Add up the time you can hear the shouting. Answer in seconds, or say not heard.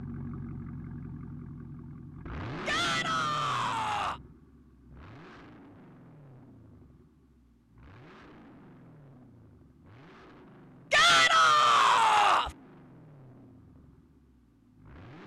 3 s.